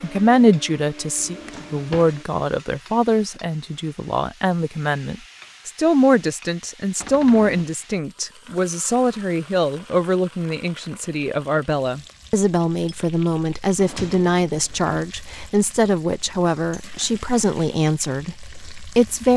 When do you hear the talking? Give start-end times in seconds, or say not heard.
0.0-19.3.